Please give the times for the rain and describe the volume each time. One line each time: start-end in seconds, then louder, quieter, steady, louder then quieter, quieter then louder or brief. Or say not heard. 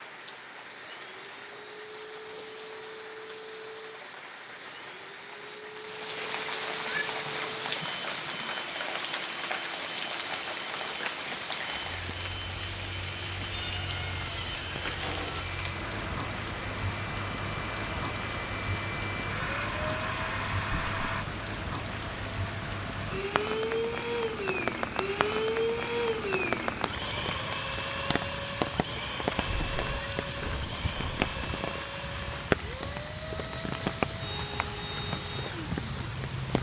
0.0-36.5 louder.